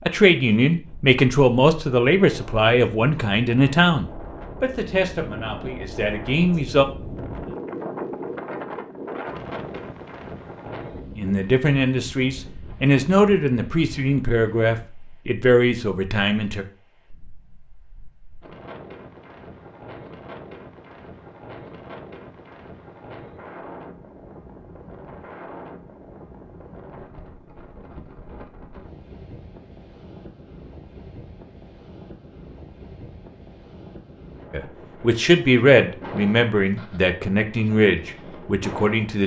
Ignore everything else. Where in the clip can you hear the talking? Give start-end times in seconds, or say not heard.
0.1-6.8, 11.1-16.6, 34.5-39.2.